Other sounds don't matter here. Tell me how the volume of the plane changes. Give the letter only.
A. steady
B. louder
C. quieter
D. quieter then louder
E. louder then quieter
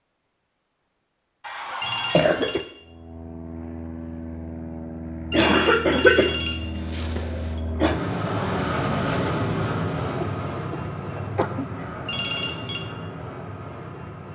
E.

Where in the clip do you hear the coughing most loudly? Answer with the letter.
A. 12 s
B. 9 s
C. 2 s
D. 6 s
D.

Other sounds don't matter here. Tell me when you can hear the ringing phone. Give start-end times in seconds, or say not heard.
1.8-2.6, 5.3-7.6, 12.1-12.8.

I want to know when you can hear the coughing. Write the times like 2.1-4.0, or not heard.
1.4-2.6, 5.3-8.0, 10.2-11.8.